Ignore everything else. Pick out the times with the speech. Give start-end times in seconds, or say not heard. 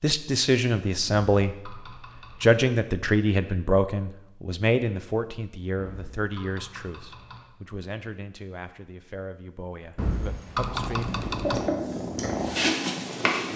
0.0-11.1.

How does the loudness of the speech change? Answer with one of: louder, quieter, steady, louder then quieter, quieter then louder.
quieter.